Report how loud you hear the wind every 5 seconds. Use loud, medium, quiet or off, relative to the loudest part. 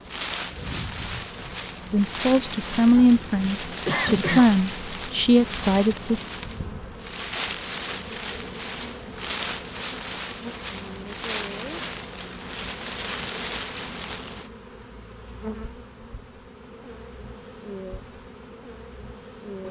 loud, loud, loud, off.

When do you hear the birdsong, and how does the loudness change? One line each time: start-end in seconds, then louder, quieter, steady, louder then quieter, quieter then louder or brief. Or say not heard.
not heard.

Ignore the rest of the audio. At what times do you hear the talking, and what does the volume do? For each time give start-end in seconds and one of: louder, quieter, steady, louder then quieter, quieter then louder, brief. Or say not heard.
1.9-6.2 steady.